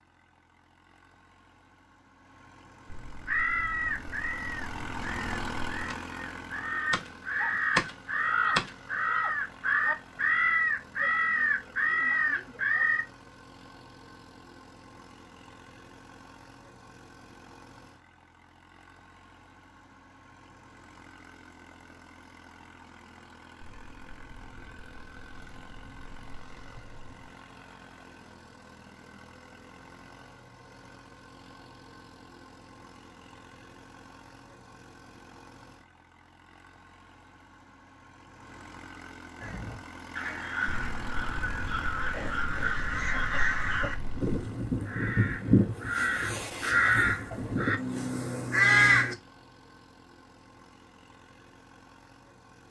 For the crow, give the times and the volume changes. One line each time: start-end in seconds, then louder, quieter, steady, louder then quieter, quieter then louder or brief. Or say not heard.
3.2-13.1 louder
39.4-49.1 louder.